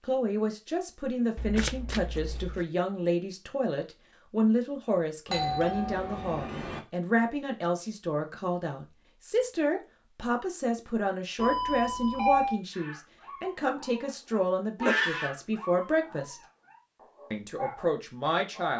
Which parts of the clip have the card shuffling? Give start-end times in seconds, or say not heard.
1.4-2.6.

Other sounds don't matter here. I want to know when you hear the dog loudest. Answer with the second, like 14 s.
15 s.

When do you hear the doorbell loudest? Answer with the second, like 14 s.
12 s.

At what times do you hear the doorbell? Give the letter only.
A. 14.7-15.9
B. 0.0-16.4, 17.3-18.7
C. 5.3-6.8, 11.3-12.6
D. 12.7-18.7
C.